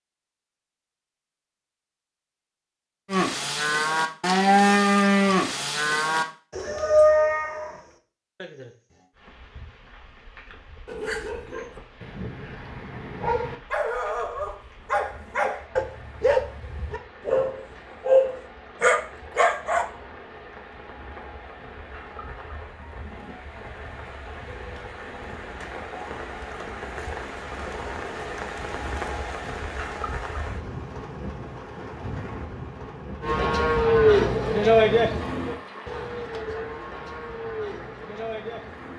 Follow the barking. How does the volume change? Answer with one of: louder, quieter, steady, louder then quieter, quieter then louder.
louder.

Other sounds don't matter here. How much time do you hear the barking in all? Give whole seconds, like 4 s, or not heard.
9 s.